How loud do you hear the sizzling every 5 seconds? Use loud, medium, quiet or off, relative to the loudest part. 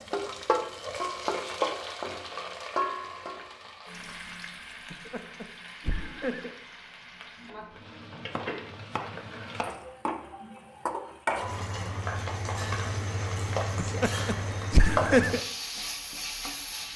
loud, medium, loud, loud.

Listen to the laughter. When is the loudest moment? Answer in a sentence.
The loudest moment of the laughter is at 15 seconds.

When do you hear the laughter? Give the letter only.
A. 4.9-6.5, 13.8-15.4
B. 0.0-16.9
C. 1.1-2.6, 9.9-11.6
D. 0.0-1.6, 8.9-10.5
A.